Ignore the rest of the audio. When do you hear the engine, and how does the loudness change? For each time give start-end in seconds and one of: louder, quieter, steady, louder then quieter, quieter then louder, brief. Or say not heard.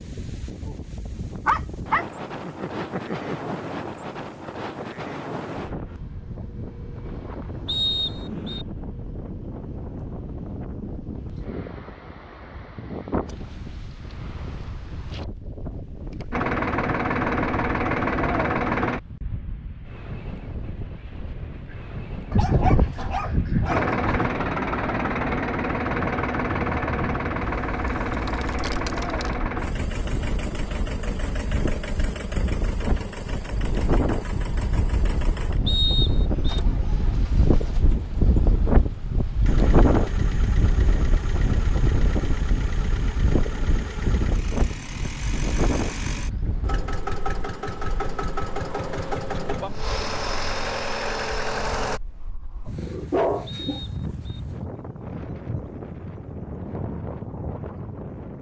16.3-19.0 brief
23.6-52.0 quieter then louder.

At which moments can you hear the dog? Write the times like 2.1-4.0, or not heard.
1.4-3.6, 22.3-24.3, 52.6-54.1.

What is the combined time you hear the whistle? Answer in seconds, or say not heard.
3 s.